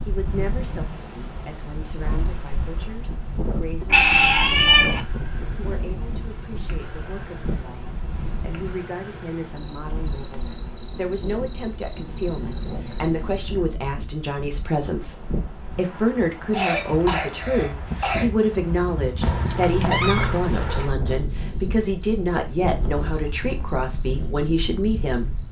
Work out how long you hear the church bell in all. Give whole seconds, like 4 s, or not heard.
not heard.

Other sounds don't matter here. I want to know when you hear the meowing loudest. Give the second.
4 s.